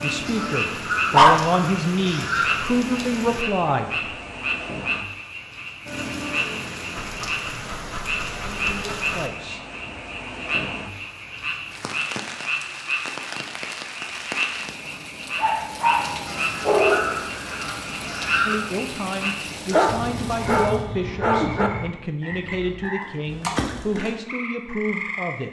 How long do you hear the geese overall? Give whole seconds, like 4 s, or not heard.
5 s.